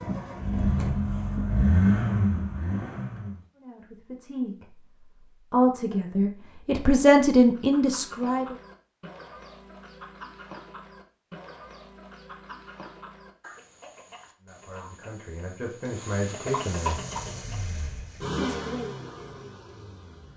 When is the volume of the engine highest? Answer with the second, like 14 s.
2 s.